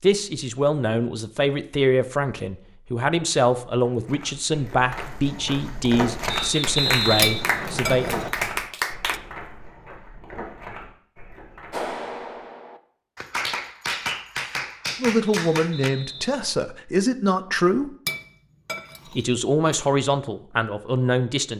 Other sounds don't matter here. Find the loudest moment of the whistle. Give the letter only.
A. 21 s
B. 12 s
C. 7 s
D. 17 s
C.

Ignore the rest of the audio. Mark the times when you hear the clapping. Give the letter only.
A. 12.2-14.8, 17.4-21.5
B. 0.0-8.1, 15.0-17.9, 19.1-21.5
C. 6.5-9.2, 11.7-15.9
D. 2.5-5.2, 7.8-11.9
C.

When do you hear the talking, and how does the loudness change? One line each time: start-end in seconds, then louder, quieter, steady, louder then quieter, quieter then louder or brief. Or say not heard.
0.0-8.1 steady
15.0-17.9 brief
19.1-21.5 brief.